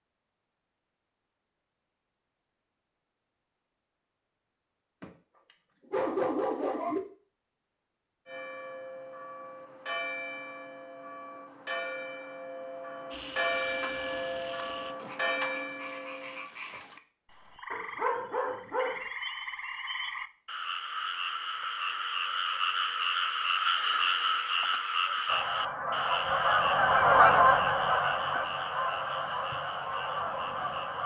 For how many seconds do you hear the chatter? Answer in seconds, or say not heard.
not heard.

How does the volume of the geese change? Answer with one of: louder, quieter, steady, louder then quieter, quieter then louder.
louder then quieter.